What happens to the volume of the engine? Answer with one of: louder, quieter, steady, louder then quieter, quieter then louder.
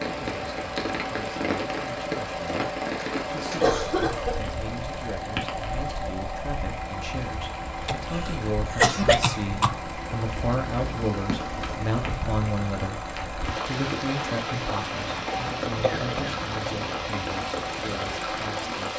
steady.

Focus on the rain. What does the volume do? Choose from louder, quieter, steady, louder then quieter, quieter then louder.
quieter then louder.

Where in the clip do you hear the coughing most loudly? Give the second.
9 s.